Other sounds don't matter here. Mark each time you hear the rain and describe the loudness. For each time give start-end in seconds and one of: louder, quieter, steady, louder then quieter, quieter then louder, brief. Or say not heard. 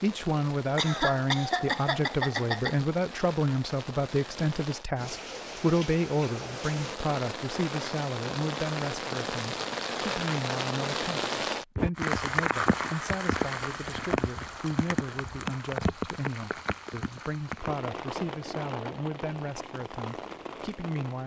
0.0-21.2 louder then quieter.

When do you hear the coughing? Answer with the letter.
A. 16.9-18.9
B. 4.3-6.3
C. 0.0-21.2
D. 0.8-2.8
D.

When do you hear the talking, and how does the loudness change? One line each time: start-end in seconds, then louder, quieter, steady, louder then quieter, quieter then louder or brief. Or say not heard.
0.0-21.2 quieter.